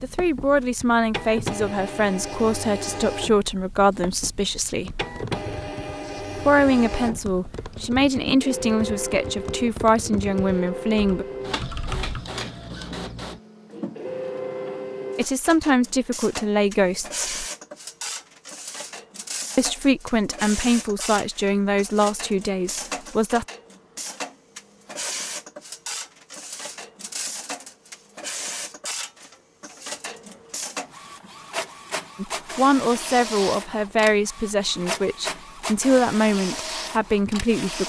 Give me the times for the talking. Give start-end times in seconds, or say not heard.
0.0-5.0, 6.4-11.2, 15.2-17.4, 19.6-23.4, 32.1-37.8.